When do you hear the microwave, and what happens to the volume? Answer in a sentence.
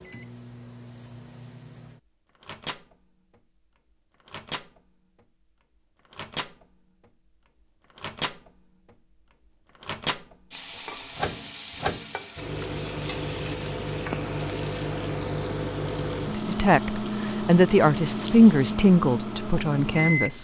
The microwave can be heard from 0.0 to 20.3 s, getting louder.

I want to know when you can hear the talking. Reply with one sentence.
You can hear the talking from 16.4 to 20.3 s.